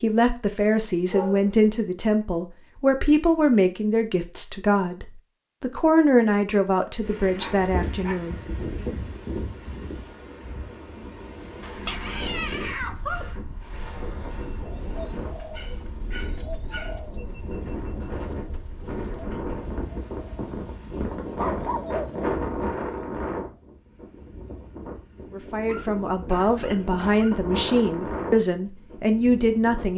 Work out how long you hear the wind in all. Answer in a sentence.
The wind can be heard for 23 seconds in total.